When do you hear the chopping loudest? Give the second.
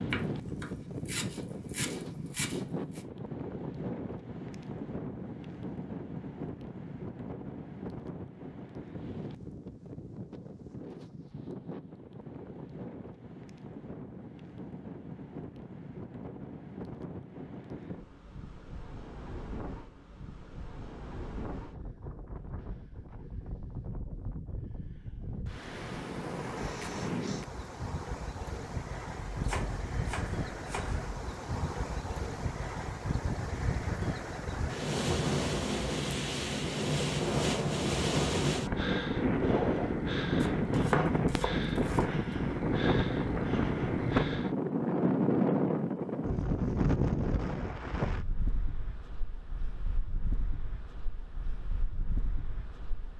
41 s.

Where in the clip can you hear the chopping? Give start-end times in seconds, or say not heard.
0.1-3.0, 29.3-31.1, 40.5-42.2.